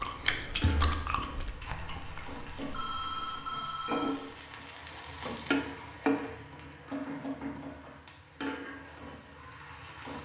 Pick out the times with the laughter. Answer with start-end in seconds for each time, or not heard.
not heard.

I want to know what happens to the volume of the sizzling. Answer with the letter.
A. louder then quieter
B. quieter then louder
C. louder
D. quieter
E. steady
A.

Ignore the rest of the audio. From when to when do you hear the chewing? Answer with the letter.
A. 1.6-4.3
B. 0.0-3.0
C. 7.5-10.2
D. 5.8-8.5
B.